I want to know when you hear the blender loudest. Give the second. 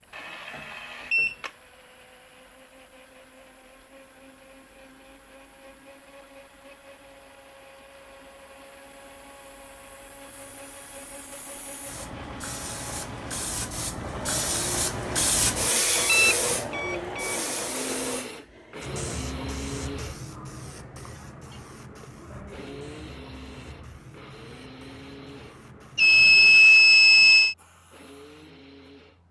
17 s.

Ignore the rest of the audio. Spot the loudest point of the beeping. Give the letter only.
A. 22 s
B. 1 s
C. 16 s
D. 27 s
D.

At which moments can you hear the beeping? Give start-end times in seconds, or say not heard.
0.1-1.5, 15.8-17.4, 25.9-27.6.